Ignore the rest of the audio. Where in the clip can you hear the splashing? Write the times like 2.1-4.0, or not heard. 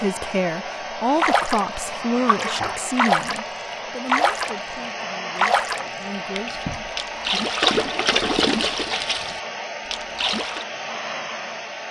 1.1-10.7.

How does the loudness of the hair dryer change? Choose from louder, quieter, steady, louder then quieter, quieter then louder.
steady.